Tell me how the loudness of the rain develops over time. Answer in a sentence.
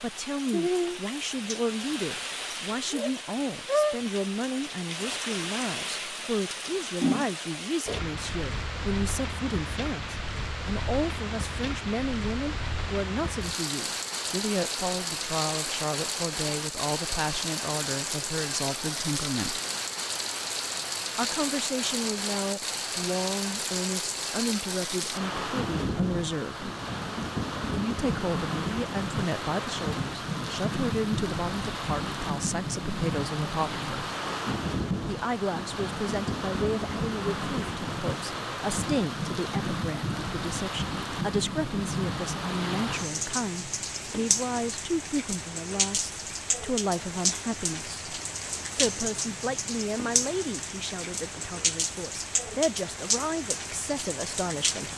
The loudness of the rain stays about the same.